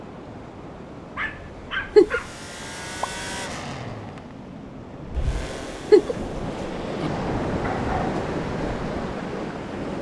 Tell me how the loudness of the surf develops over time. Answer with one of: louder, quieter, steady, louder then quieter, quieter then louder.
louder.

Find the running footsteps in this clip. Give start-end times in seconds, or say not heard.
not heard.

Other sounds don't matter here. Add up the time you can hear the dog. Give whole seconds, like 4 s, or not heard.
2 s.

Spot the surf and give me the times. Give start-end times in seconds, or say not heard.
0.0-9.9.